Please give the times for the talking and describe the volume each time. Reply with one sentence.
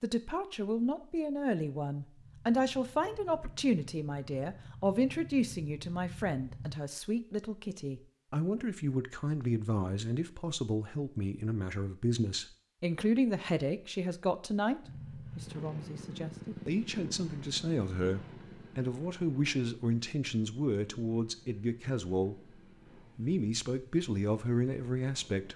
You can hear the talking from 0.0 to 22.4 s, at a steady volume; and briefly from 23.1 to 25.5 s.